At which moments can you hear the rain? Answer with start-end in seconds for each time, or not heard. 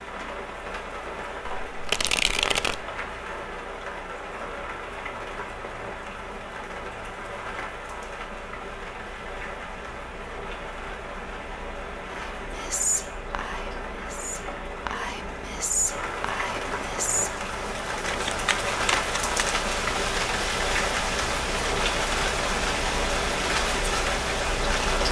0.0-25.0.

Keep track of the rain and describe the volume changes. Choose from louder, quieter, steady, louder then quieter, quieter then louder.
louder.